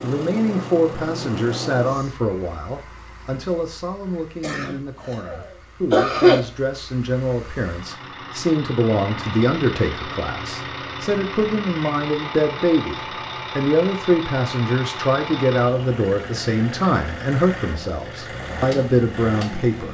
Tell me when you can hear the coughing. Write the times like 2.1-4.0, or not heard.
4.4-6.4.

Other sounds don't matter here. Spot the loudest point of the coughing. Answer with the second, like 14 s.
6 s.